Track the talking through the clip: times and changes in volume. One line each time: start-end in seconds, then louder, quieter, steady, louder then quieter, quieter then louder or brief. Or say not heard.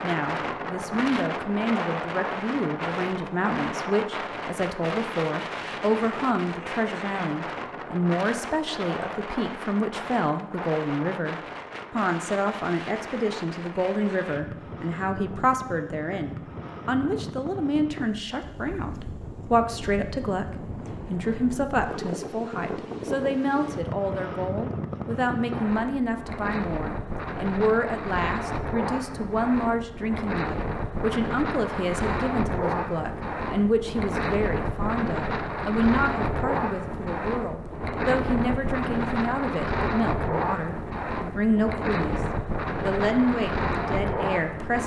0.0-42.2 steady
42.8-44.8 brief.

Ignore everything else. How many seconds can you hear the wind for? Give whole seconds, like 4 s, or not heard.
45 s.